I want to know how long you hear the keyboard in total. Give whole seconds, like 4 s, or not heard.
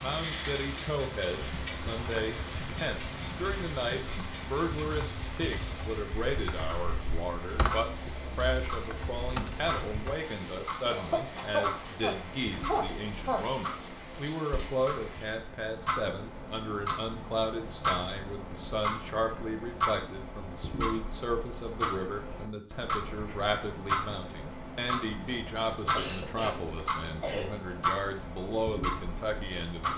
9 s.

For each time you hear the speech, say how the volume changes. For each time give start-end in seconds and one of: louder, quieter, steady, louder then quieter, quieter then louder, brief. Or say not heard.
0.0-29.9 steady.